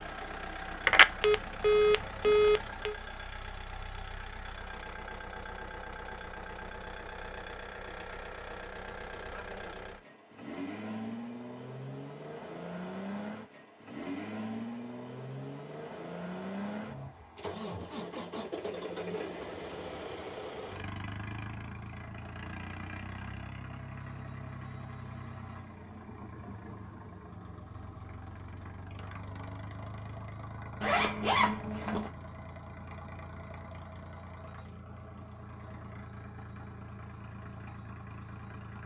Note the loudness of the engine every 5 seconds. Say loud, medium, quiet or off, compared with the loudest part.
loud, loud, loud, loud, loud, medium, medium, medium.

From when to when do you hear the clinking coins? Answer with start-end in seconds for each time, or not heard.
not heard.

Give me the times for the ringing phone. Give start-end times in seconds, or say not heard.
0.8-3.0.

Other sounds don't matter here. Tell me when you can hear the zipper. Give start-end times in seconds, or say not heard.
30.8-32.1.